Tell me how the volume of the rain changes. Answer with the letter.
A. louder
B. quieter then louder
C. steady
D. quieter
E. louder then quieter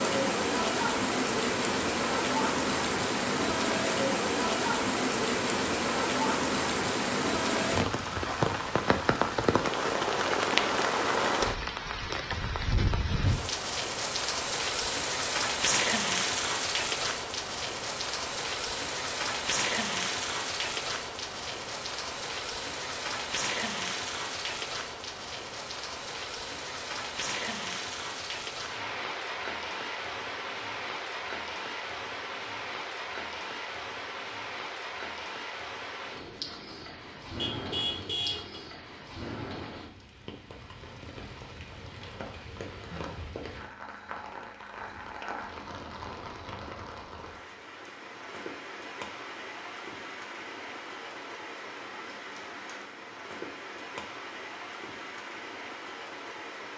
D.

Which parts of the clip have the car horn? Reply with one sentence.
The car horn can be heard from 37.4 to 38.6 s.